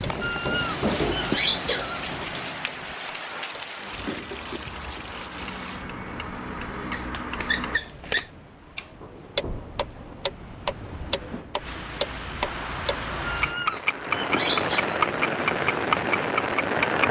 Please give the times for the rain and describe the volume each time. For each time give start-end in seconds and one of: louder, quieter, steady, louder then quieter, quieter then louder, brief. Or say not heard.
0.0-17.0 quieter then louder.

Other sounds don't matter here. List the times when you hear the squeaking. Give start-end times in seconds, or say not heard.
0.2-2.1, 6.9-8.2, 13.2-15.2.